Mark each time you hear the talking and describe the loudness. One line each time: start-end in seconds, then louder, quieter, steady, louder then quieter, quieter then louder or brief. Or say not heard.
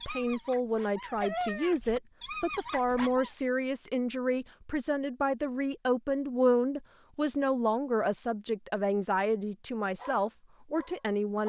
0.1-11.4 steady.